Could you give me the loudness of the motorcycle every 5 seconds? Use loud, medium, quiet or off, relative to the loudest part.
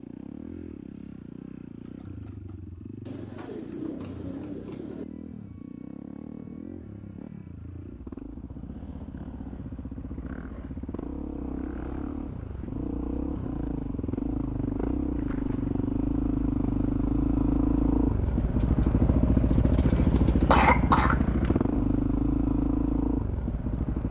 quiet, quiet, medium, loud, loud.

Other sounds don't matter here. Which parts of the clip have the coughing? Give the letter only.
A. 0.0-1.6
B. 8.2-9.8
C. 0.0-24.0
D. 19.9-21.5
D.